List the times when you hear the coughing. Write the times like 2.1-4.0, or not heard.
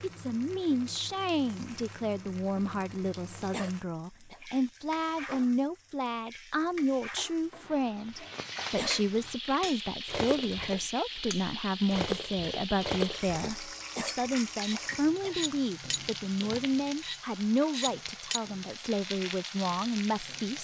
3.4-4.4, 8.6-9.1, 13.8-15.4.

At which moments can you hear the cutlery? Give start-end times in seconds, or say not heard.
9.6-18.4.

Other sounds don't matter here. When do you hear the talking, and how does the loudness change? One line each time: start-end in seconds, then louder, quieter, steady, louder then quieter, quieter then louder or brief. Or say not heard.
0.0-20.5 steady.